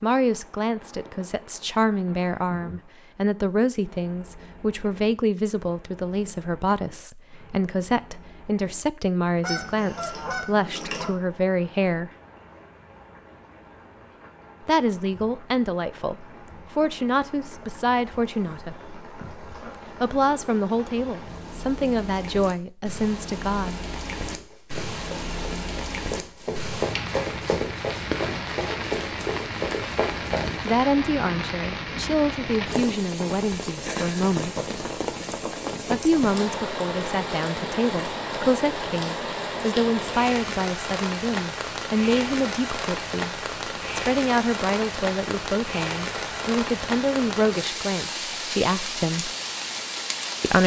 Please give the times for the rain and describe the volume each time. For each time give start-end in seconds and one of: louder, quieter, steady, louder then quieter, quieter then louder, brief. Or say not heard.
0.0-50.6 louder.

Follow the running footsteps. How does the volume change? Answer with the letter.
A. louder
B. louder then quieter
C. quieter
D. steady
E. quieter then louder
A.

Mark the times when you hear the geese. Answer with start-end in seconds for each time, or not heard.
9.4-11.2.